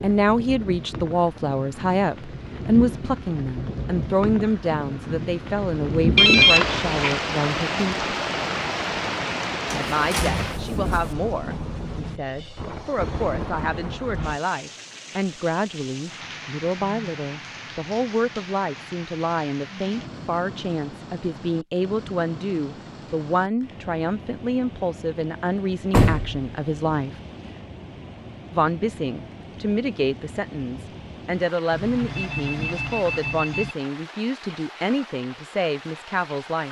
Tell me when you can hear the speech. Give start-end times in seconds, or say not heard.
0.0-8.1, 9.8-27.1, 28.5-36.6.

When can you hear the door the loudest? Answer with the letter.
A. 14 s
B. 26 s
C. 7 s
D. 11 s
B.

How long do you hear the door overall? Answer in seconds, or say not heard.
2 s.